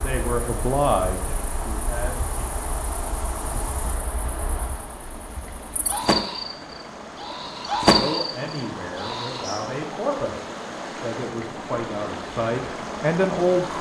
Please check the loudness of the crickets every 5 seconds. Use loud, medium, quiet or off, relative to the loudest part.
medium, loud, off.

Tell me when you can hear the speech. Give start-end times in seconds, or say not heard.
0.0-2.5, 7.9-13.7.